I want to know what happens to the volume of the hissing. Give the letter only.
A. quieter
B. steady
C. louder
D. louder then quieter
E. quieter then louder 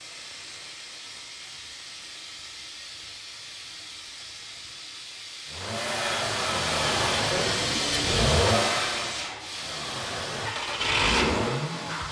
D.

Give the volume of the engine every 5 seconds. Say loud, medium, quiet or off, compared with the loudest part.
off, loud, loud.